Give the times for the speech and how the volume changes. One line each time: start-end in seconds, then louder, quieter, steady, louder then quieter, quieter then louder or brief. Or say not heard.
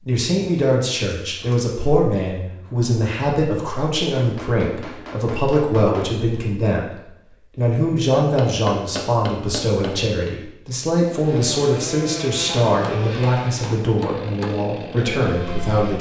0.1-15.9 steady.